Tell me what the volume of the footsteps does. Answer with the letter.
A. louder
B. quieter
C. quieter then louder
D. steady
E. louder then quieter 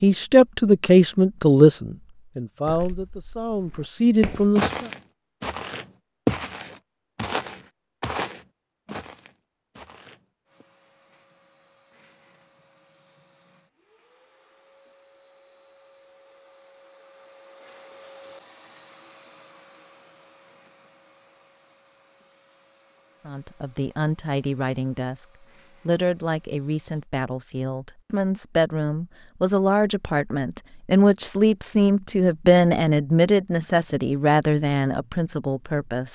E.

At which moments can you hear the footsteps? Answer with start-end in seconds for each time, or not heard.
2.6-10.7.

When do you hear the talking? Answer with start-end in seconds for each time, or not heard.
0.0-4.8, 23.2-25.2, 25.9-36.1.